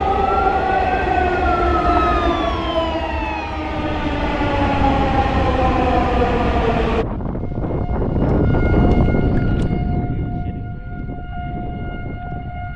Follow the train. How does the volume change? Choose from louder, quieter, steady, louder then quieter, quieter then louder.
quieter then louder.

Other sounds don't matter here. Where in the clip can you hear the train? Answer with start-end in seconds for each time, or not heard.
0.0-7.0.